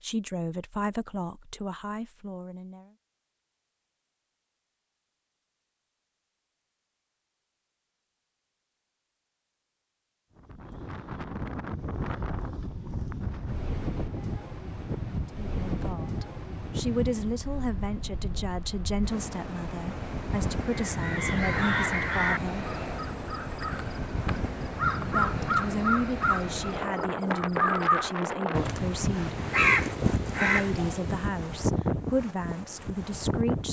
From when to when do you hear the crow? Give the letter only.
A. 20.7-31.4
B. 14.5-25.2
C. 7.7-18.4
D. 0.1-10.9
A.